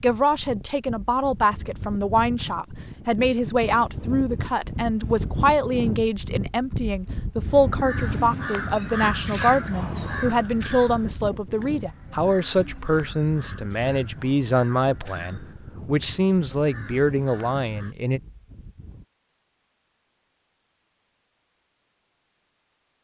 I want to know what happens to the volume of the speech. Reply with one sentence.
The volume of the speech stays about the same.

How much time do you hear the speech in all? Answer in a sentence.
You can hear the speech for 18 seconds altogether.